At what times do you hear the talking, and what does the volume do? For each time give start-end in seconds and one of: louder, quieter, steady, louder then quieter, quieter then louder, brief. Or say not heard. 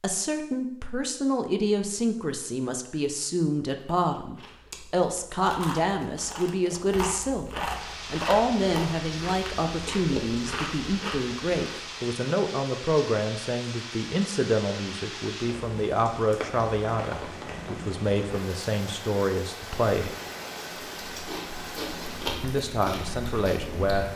0.0-20.1 steady
22.4-24.1 brief.